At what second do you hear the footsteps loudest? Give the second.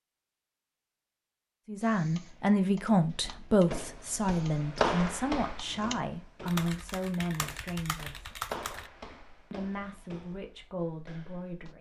5 s.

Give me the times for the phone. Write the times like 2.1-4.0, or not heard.
not heard.